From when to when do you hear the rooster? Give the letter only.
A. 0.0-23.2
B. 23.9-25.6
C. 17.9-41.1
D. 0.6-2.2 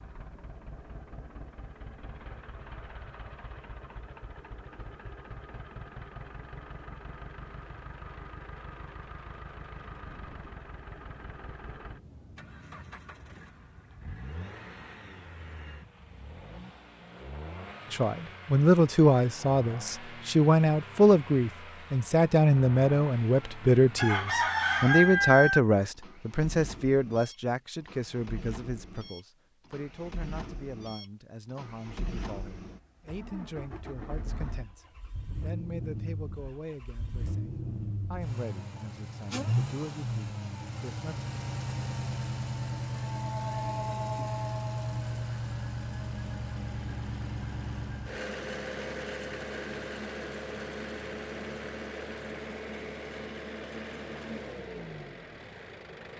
B.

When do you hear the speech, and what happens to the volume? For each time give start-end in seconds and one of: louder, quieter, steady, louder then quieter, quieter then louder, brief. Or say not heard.
17.9-41.1 quieter.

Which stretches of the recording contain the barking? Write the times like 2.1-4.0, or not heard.
not heard.